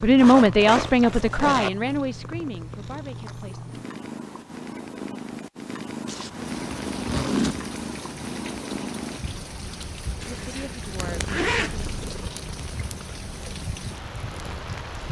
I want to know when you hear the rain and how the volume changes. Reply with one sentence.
You can hear the rain from 6.4 to 15.0 s, at a steady volume.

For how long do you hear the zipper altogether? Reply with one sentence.
The zipper can be heard for 5 seconds in total.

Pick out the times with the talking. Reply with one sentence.
The talking can be heard from 0.0 to 3.6 s and from 10.3 to 11.8 s.